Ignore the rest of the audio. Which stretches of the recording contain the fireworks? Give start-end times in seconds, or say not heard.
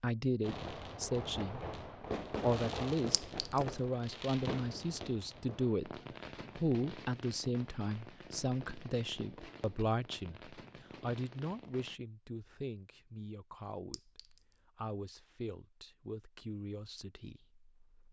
0.4-11.9.